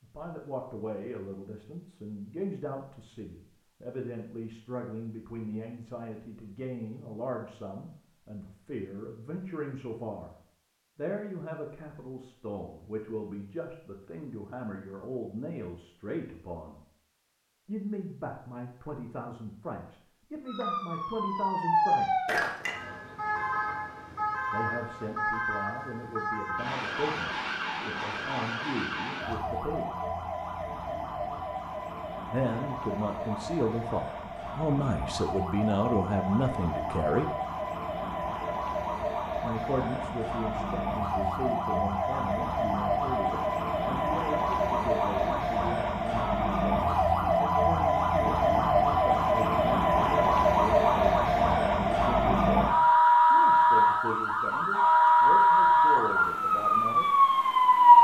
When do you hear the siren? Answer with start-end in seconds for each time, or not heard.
20.4-57.9.